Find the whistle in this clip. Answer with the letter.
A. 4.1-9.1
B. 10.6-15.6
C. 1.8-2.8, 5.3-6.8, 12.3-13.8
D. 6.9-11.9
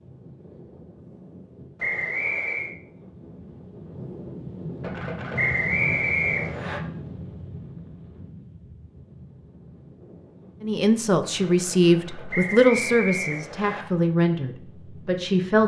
C.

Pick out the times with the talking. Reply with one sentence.
The talking can be heard from 10.6 to 15.6 s.